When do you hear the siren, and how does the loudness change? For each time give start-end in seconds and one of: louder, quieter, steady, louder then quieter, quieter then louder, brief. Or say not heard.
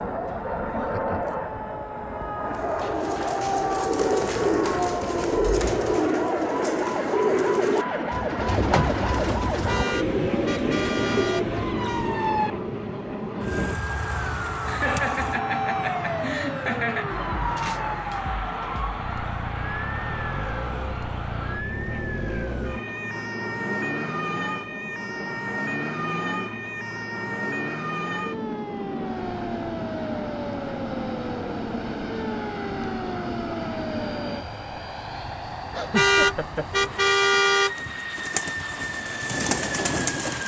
0.0-34.5 steady.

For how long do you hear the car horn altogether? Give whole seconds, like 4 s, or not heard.
4 s.